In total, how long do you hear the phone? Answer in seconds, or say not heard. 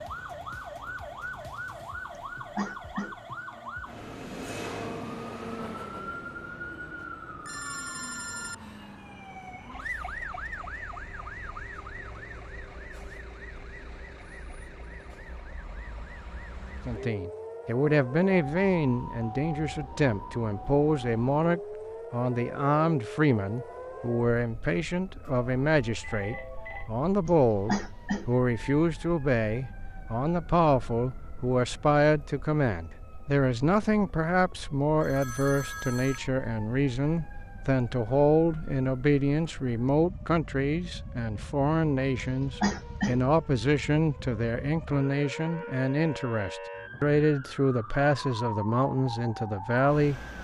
4 s.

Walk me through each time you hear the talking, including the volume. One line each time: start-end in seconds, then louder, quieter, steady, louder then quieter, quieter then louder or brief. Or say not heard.
16.9-50.2 steady.